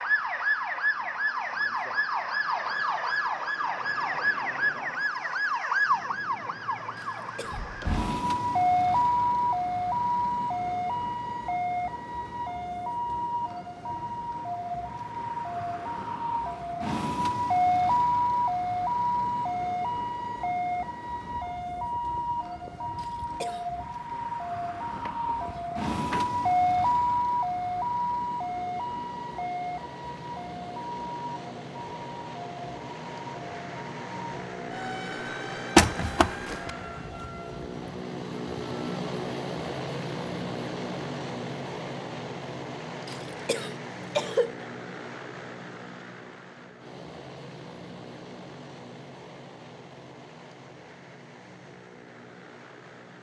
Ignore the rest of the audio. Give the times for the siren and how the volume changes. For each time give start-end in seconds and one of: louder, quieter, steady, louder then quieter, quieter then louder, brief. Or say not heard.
0.0-38.0 quieter.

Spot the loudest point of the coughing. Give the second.
44 s.